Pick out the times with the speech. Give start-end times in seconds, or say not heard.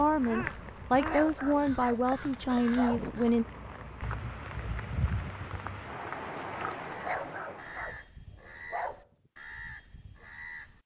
0.0-3.5.